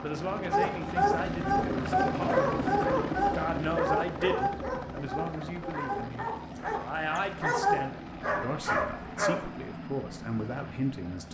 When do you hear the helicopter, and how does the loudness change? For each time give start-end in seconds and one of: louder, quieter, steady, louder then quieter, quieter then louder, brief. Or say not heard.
0.0-11.3 quieter.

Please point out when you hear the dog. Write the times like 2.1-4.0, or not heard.
0.5-9.7.